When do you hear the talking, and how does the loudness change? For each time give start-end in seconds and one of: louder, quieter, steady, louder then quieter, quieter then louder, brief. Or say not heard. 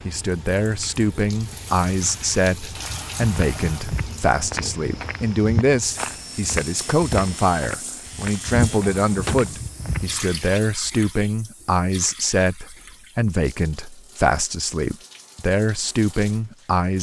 0.1-16.9 steady.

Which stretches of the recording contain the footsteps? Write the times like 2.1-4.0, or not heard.
2.7-10.4.